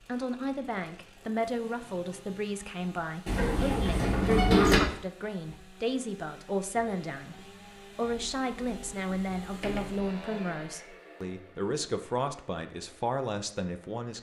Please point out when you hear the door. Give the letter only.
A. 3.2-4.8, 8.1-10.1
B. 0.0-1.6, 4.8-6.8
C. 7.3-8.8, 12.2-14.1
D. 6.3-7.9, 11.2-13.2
A.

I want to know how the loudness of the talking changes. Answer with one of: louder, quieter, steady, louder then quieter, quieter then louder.
steady.